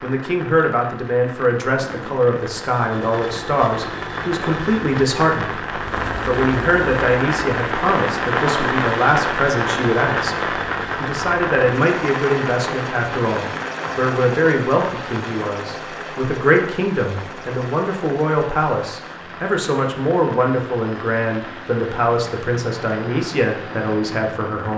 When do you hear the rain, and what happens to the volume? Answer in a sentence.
The rain can be heard from 0.0 to 24.7 s, getting louder then quieter.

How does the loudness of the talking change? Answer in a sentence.
The loudness of the talking stays about the same.